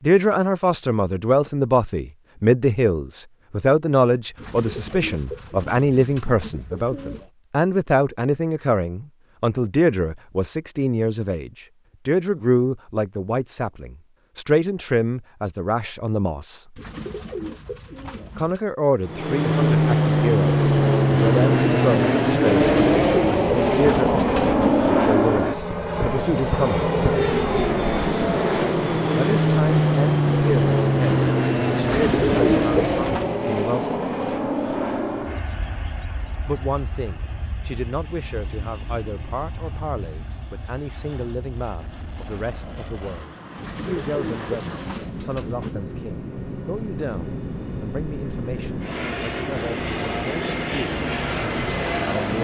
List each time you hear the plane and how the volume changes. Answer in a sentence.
The plane can be heard from 19.1 to 52.3 s, getting quieter then louder.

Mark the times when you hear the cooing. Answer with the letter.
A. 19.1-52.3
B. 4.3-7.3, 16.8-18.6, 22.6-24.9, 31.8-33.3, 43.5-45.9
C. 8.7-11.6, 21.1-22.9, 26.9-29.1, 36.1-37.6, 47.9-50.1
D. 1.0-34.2
B.